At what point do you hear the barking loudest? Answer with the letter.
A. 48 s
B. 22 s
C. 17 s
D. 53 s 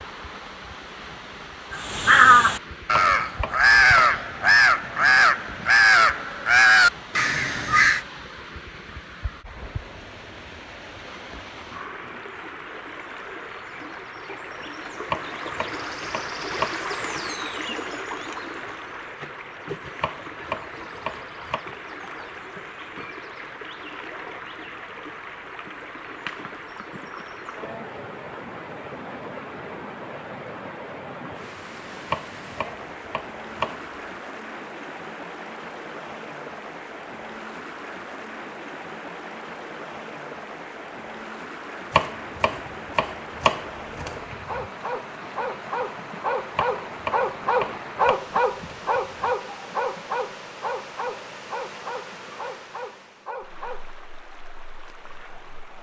A.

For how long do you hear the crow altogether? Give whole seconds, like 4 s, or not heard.
6 s.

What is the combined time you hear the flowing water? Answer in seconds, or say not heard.
56 s.